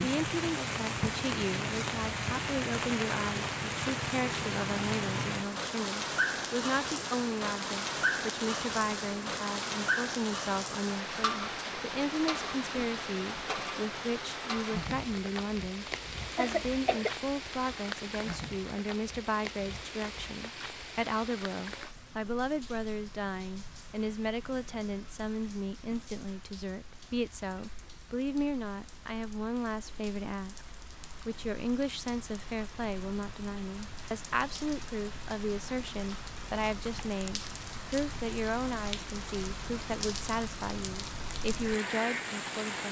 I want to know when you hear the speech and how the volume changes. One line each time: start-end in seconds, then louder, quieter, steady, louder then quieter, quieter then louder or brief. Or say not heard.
0.0-42.8 steady.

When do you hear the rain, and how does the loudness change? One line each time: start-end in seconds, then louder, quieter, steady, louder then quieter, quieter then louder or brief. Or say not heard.
0.0-42.8 quieter then louder.